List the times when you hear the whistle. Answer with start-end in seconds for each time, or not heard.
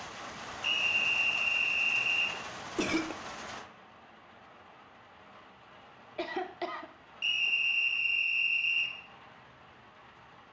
0.6-2.4, 7.2-8.9.